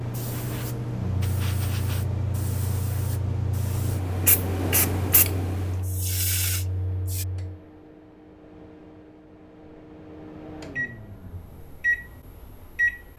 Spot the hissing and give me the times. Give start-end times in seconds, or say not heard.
0.0-7.2.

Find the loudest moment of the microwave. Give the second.
12 s.